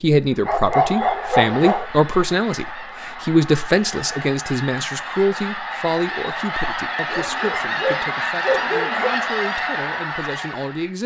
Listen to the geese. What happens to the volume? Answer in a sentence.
The volume of the geese goes up.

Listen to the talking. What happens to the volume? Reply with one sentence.
The loudness of the talking goes down.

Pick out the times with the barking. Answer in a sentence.
You can hear the barking from 0.5 to 1.9 s and from 7.1 to 9.1 s.